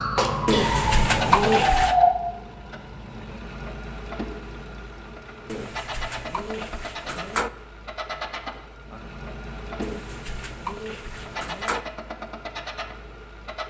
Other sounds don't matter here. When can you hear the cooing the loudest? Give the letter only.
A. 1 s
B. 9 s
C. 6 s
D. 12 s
A.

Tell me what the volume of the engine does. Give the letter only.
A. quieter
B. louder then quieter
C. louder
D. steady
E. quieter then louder
A.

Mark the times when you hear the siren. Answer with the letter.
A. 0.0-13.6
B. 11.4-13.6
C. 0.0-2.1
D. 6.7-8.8
C.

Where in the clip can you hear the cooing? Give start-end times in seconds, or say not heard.
0.5-1.9, 5.5-7.5, 9.8-11.8.